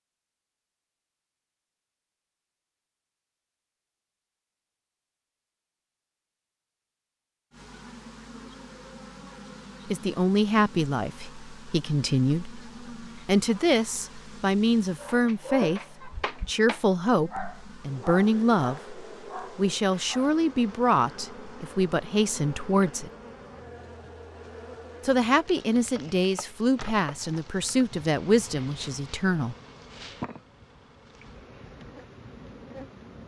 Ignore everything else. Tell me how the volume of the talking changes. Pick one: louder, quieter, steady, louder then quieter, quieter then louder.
steady.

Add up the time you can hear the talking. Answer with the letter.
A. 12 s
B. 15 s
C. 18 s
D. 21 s
C.